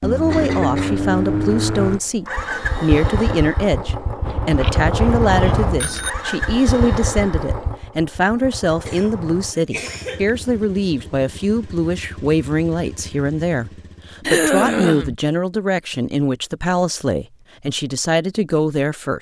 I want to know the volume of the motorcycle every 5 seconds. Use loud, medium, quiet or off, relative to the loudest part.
loud, loud, quiet, off.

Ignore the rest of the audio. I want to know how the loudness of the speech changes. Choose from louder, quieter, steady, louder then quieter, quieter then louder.
steady.